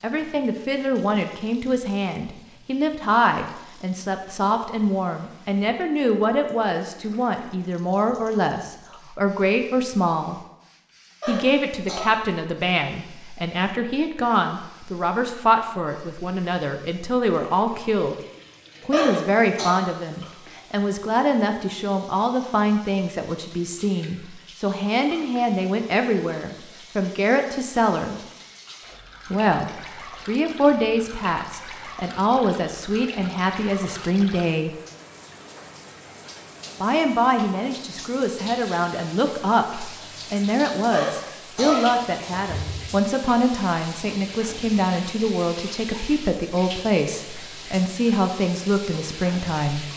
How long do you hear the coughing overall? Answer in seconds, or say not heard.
4 s.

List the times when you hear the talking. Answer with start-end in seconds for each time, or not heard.
0.0-10.4, 11.2-18.1, 18.9-28.2, 29.3-34.7, 36.8-49.9.